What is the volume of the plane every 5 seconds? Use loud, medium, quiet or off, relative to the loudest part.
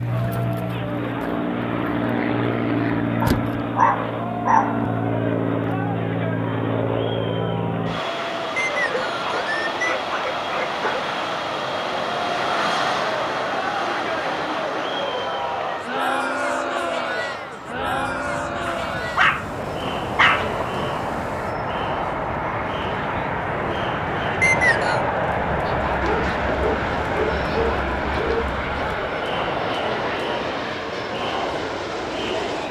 loud, loud, loud, medium, loud, loud, medium.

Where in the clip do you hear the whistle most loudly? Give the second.
25 s.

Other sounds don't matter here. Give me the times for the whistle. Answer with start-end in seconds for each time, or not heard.
8.6-9.8, 24.4-25.0.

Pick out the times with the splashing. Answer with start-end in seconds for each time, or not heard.
not heard.